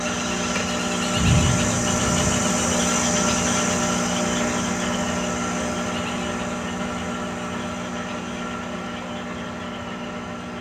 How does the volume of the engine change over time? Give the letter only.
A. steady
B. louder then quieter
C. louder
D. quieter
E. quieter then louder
D.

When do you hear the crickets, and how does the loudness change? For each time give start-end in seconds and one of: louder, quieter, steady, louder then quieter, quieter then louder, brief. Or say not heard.
0.0-10.5 quieter.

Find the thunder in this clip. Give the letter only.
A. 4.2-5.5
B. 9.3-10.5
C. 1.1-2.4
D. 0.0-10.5
C.